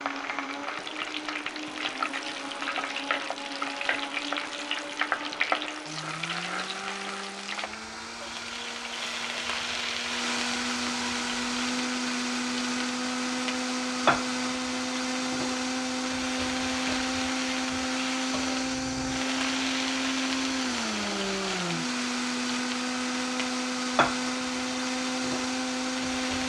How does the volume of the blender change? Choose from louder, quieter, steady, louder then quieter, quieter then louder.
louder.